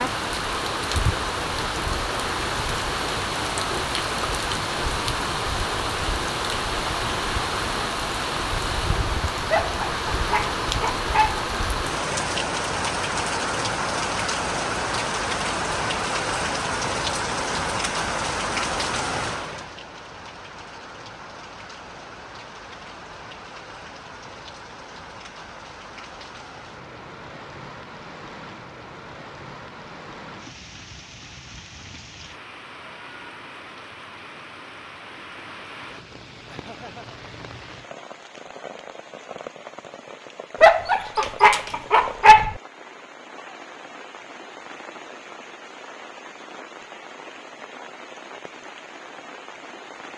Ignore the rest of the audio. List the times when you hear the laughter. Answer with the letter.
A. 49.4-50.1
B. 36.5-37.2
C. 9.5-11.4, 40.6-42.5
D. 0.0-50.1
B.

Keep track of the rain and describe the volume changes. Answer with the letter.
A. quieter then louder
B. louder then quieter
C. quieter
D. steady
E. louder
C.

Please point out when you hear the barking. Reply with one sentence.
The barking can be heard from 9.5 to 11.4 s and from 40.6 to 42.5 s.